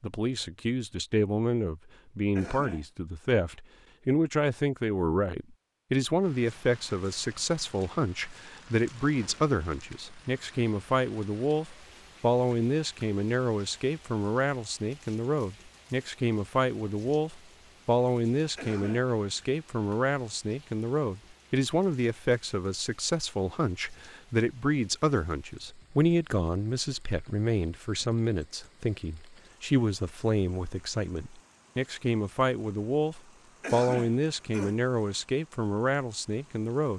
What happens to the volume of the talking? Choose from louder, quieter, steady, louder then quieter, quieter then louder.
steady.